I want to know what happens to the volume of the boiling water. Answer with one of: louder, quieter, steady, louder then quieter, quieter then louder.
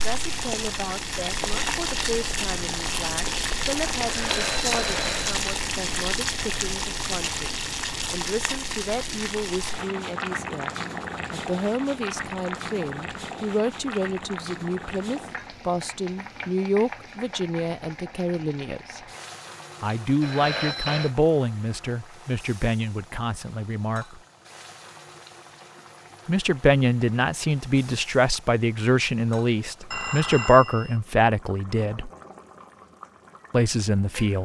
quieter.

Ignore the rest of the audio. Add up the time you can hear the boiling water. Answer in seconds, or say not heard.
34 s.